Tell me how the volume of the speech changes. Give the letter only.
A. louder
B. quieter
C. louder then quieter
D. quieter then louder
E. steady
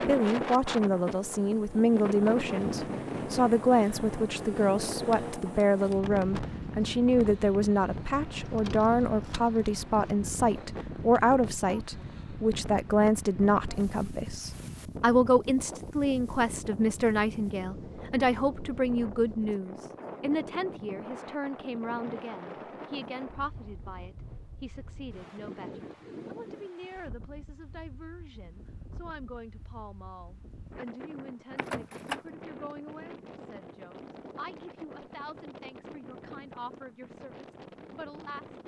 B.